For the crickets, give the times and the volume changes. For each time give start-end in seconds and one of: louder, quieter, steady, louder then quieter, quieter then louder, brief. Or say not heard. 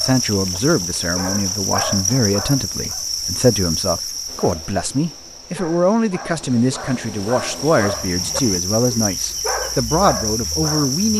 0.0-11.1 quieter then louder.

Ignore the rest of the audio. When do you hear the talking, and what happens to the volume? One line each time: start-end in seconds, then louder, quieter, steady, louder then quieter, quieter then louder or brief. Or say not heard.
0.0-11.1 steady.